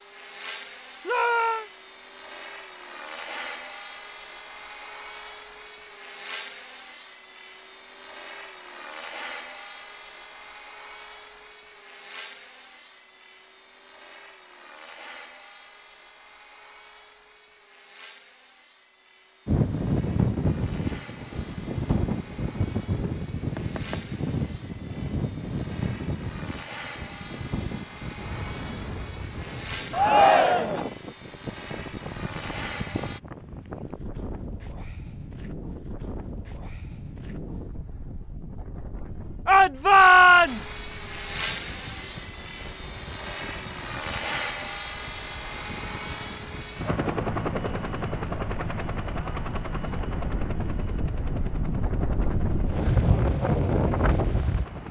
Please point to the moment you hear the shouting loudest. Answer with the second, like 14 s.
40 s.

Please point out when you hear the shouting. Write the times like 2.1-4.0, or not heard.
1.1-1.6, 29.9-30.9, 39.5-40.8.